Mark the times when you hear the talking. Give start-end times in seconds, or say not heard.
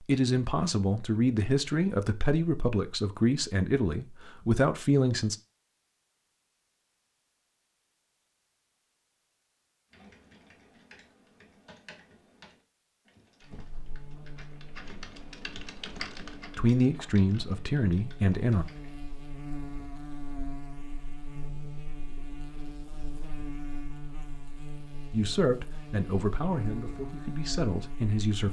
0.0-5.3, 16.6-18.6, 25.1-28.4.